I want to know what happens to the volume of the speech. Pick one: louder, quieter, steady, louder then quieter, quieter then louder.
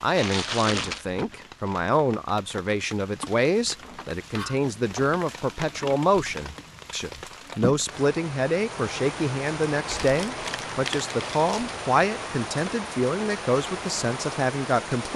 steady.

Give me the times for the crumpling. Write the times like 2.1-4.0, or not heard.
0.1-1.1, 9.8-11.7.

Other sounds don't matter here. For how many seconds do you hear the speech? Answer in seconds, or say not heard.
15 s.